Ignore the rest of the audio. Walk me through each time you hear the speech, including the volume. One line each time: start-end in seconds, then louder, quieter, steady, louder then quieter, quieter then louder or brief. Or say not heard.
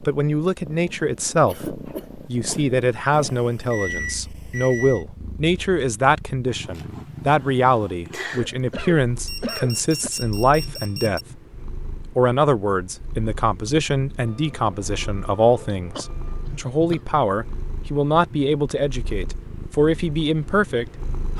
0.0-11.2 steady
12.2-21.3 steady.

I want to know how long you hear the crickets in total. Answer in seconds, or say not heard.
not heard.